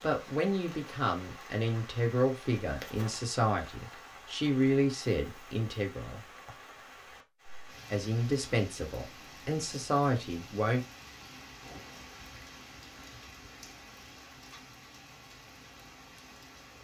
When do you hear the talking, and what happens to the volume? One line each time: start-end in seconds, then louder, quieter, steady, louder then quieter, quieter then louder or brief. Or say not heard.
0.0-6.2 steady
7.9-10.8 brief.